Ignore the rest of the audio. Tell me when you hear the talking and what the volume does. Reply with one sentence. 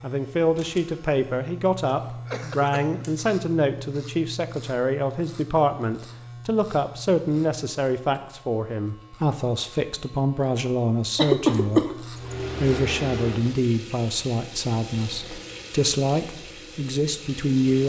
The talking can be heard from 0.0 to 17.8 s, at a steady volume.